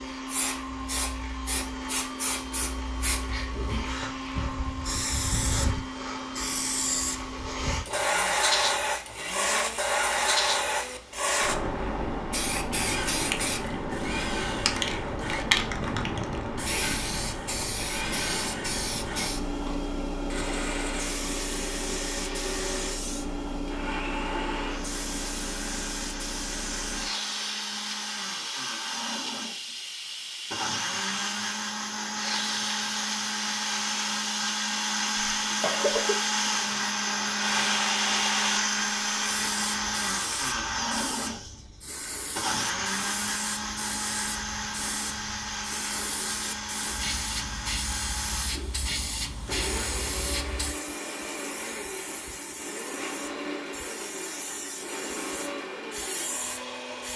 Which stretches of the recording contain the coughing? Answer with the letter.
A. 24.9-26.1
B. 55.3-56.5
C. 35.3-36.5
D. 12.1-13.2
C.